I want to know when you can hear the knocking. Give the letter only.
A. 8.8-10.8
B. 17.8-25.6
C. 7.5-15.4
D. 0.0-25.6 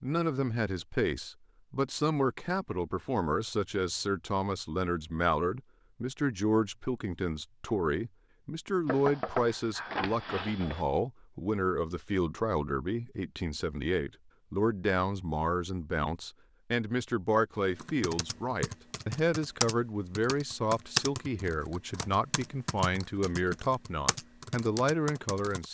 A.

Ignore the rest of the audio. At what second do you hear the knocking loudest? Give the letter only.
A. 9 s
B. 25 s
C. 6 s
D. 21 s
A.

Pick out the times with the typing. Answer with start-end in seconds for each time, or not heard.
17.8-25.6.